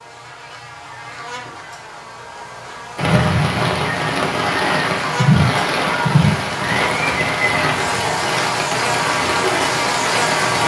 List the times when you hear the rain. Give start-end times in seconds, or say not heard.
3.0-10.6.